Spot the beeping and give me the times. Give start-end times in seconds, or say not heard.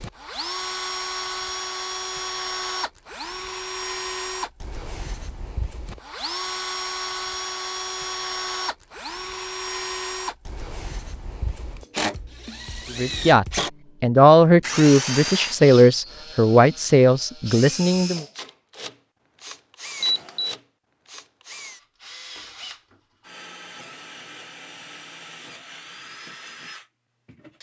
20.0-20.6.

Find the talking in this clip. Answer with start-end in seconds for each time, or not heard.
12.9-18.2.